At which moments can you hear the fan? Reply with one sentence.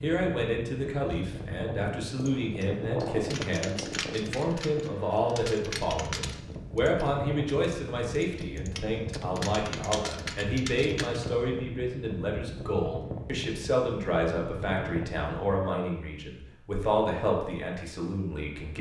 You can hear the fan from 0.2 to 15.6 s.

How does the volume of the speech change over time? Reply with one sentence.
The loudness of the speech stays about the same.